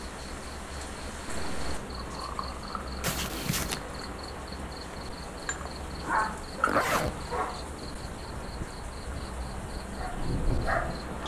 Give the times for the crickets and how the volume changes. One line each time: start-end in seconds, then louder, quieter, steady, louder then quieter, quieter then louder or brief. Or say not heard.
0.0-11.2 steady.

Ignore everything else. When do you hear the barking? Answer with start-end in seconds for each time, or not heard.
5.9-7.5, 9.8-11.2.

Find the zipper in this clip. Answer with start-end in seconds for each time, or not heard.
3.0-3.8, 6.7-7.2.